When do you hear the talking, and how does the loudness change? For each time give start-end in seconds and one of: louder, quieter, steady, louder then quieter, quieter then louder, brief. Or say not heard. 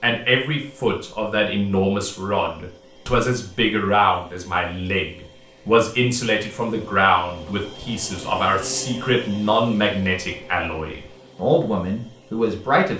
0.0-12.9 steady.